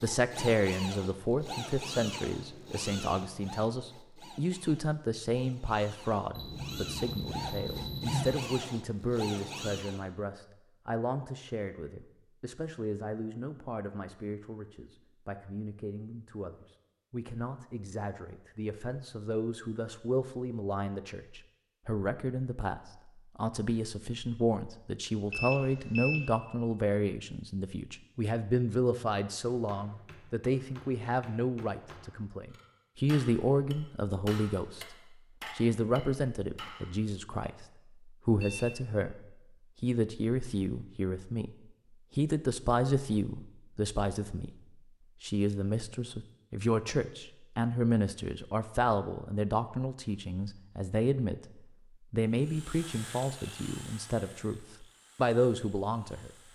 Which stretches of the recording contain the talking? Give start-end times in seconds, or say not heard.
0.0-41.5, 42.1-44.5, 45.2-56.3.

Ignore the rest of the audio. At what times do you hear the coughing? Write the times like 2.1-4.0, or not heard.
not heard.